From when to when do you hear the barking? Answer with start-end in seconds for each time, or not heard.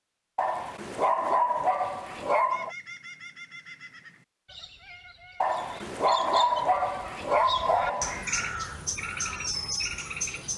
0.3-2.8, 5.4-8.2.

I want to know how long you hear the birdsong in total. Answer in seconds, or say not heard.
8 s.